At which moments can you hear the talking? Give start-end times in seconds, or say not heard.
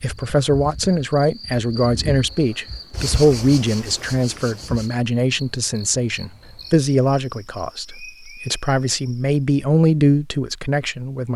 0.0-11.3.